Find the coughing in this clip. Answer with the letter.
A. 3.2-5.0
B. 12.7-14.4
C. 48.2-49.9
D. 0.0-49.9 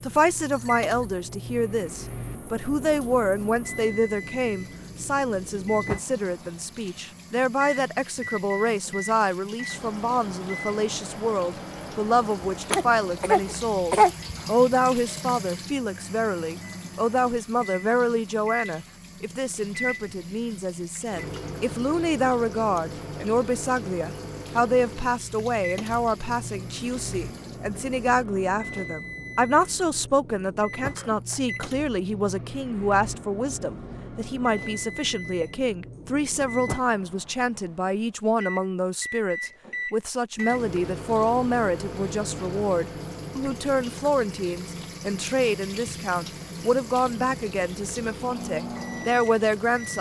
B.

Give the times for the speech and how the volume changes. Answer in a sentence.
You can hear the speech from 0.0 to 49.9 s, at a steady volume.